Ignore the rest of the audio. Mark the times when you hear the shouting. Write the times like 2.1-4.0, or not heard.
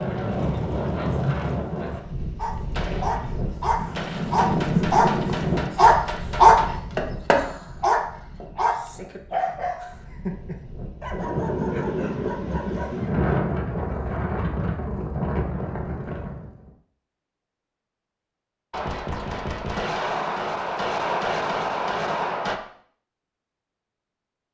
not heard.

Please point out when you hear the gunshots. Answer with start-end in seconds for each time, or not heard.
2.7-6.7, 18.7-22.6.